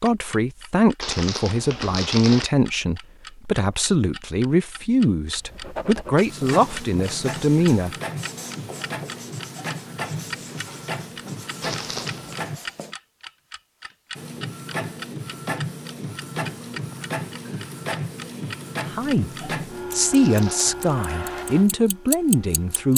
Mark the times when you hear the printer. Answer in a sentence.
The printer can be heard from 6.2 to 12.6 s and from 14.2 to 22.9 s.